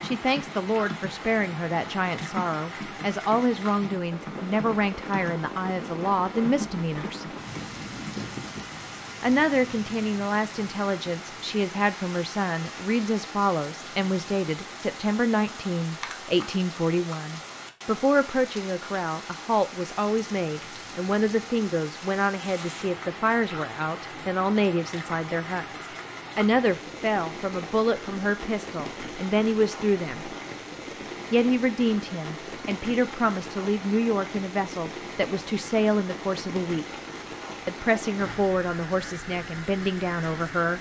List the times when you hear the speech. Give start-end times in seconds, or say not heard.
0.0-7.2, 9.2-30.3, 31.3-37.0, 37.6-40.7.